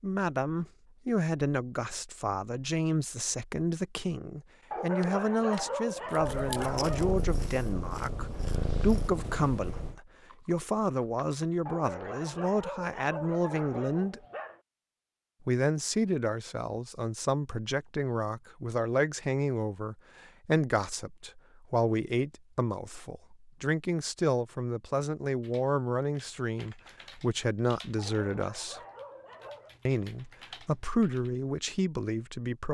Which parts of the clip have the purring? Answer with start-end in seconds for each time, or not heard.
6.2-10.0.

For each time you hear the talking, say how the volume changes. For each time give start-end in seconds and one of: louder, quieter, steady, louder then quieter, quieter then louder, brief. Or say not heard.
0.0-14.2 steady
15.4-28.8 steady
29.9-32.6 brief.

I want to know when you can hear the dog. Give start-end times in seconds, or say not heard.
4.7-7.2, 11.7-14.6, 27.9-29.8.